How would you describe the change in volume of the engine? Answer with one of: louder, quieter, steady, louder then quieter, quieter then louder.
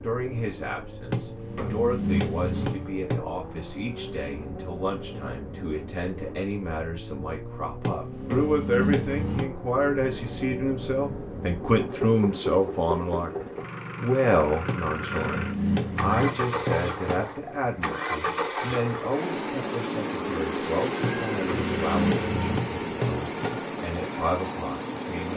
louder.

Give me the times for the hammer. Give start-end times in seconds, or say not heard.
1.1-3.2, 7.8-9.5, 14.7-17.3, 21.0-23.6.